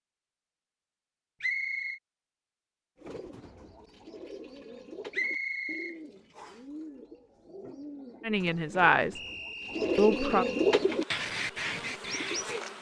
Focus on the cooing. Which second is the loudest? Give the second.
11 s.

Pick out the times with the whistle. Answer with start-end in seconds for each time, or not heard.
1.4-2.0, 5.1-6.5, 9.2-10.8.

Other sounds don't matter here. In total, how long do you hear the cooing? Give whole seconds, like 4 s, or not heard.
10 s.